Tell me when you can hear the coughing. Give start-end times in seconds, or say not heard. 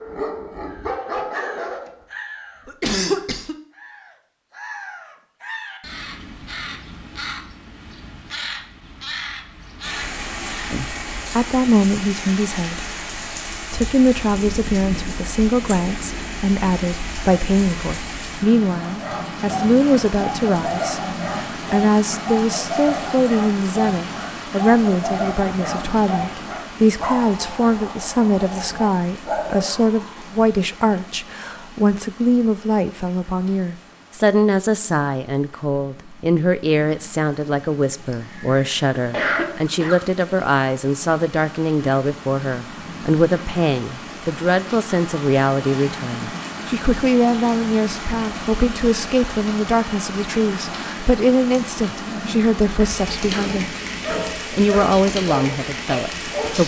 2.6-3.5, 38.1-40.0.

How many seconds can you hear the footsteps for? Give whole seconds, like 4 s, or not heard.
not heard.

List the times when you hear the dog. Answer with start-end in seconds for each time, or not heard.
0.0-2.0, 18.9-30.2, 52.9-56.6.